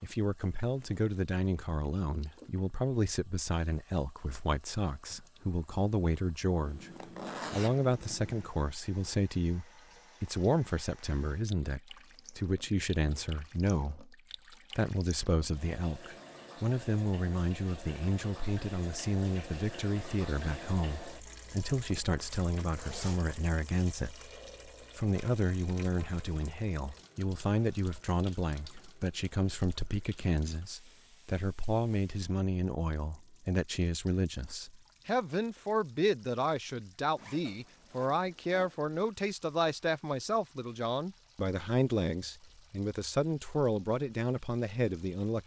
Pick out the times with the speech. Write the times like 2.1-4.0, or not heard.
0.0-6.9, 7.5-14.2, 14.8-24.3, 24.9-45.4.